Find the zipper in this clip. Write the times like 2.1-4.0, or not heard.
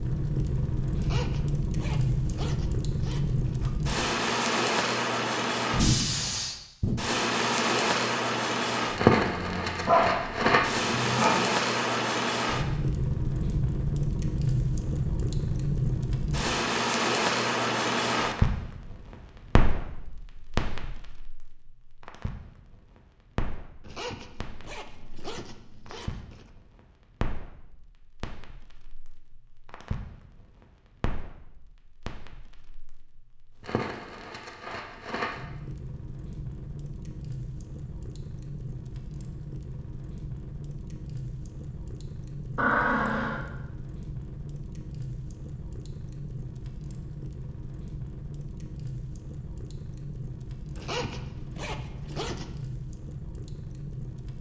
0.9-3.7, 23.8-26.5, 50.8-52.6.